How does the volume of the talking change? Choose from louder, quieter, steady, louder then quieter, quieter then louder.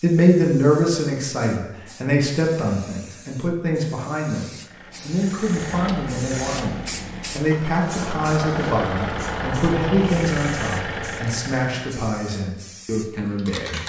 quieter.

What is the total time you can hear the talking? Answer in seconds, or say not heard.
14 s.